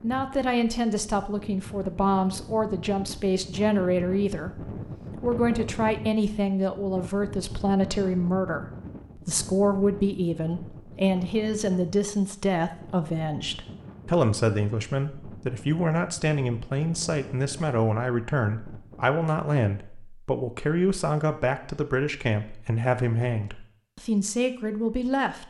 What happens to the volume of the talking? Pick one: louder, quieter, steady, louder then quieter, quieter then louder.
steady.